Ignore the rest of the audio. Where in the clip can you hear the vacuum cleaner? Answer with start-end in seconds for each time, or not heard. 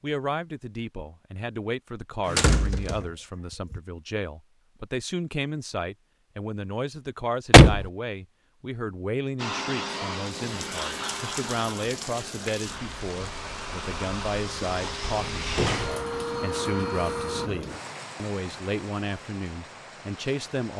9.3-17.5.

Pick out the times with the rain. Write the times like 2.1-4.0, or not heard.
10.2-20.7.